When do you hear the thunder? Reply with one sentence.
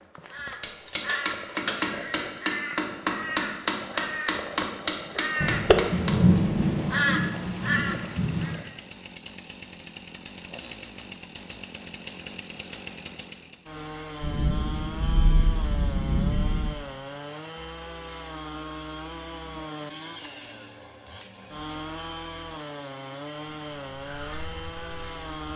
You can hear the thunder from 5.4 to 8.6 s and from 14.2 to 16.7 s.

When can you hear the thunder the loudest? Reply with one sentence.
The loudest moment of the thunder is at 6 seconds.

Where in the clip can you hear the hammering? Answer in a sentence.
You can hear the hammering from 0.6 to 6.4 s.